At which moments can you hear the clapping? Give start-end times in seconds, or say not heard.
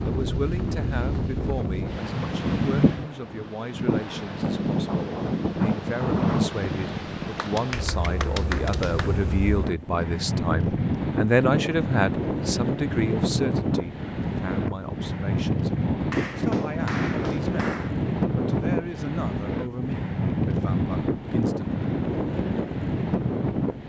7.3-9.1, 16.1-17.9.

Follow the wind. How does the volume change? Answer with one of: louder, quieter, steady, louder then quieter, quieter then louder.
steady.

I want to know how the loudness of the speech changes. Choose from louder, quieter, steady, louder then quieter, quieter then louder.
louder then quieter.